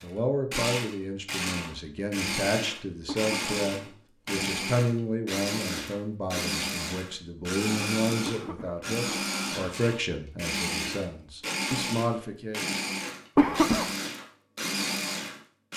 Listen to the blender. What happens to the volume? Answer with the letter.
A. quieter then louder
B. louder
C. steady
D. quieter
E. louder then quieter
C.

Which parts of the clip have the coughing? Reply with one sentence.
The coughing can be heard from 3.0 to 3.5 s, from 8.2 to 8.8 s and from 13.3 to 13.9 s.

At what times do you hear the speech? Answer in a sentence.
You can hear the speech from 0.0 to 12.7 s.